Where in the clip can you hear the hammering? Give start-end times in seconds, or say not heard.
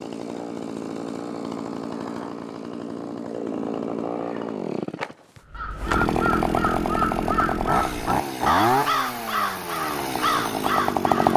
not heard.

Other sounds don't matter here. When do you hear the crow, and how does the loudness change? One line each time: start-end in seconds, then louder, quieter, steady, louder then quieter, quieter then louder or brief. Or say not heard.
5.5-11.3 steady.